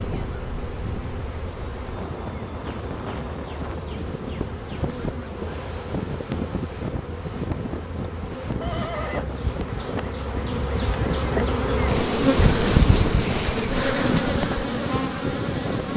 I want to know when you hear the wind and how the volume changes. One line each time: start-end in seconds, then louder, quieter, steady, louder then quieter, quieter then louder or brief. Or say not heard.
0.0-15.9 louder.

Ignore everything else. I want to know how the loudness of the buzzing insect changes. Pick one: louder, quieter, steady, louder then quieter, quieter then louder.
louder.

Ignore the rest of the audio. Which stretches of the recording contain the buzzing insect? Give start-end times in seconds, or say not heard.
0.0-15.9.